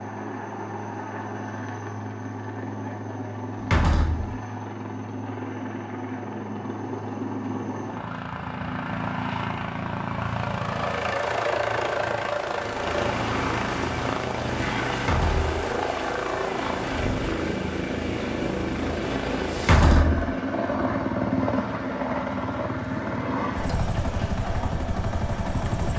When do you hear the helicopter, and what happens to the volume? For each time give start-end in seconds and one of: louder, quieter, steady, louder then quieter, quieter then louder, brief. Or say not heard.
0.0-25.9 louder.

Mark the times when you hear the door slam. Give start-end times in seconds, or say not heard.
3.6-4.3, 14.9-15.6, 19.6-20.3.